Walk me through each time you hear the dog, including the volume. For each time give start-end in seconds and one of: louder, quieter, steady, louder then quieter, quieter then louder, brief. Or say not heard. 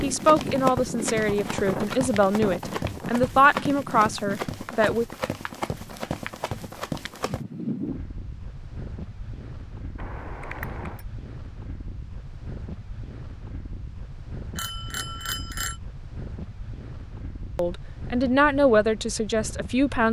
not heard.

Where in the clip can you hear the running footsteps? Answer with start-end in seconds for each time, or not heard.
0.0-7.5.